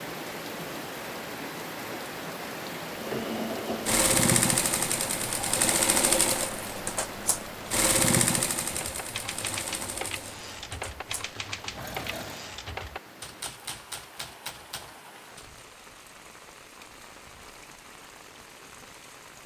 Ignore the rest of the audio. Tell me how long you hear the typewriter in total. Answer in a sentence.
The typewriter can be heard for 7 seconds in total.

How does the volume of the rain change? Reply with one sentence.
The loudness of the rain goes down.